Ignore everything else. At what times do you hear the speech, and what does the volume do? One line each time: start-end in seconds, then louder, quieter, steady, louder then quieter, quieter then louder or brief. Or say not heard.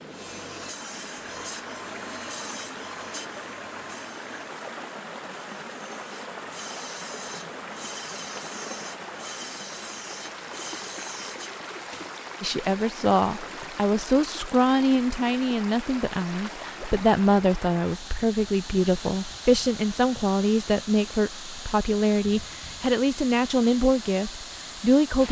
12.4-25.2 steady.